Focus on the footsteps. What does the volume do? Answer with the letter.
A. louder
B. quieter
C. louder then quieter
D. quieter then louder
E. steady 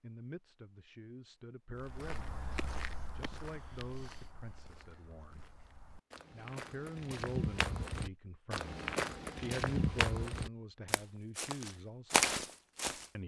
D.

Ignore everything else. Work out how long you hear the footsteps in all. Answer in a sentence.
The footsteps can be heard for 11 seconds in total.